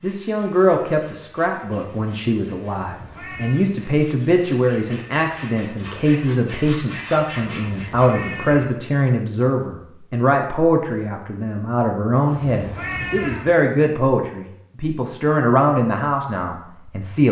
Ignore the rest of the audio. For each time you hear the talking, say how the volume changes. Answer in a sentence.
The talking can be heard from 0.0 to 17.2 s, at a steady volume.